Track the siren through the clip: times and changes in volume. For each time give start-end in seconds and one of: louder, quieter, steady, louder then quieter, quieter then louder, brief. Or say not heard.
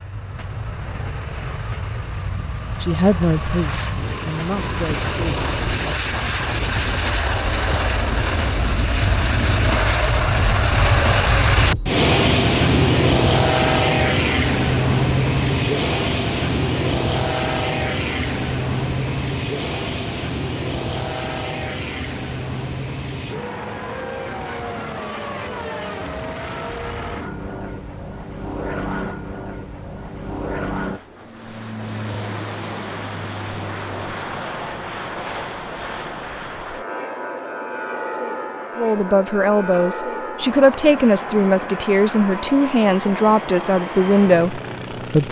not heard.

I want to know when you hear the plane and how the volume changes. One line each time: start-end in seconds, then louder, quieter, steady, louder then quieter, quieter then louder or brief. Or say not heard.
0.0-45.2 louder then quieter.